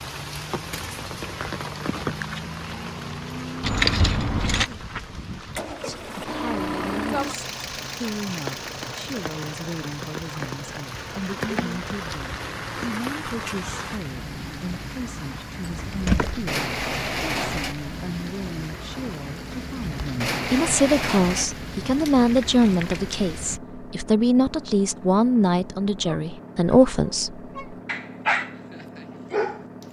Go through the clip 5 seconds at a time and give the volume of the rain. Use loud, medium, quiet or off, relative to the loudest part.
loud, medium, loud, loud, loud, off.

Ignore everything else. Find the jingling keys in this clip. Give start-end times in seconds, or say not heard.
3.6-4.7, 15.6-16.4, 21.9-23.2.